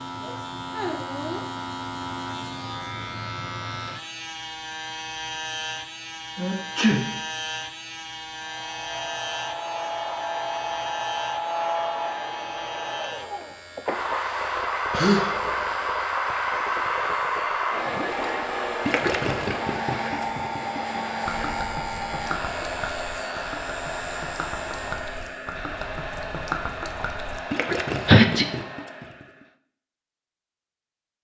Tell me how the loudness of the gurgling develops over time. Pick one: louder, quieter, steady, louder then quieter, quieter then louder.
quieter then louder.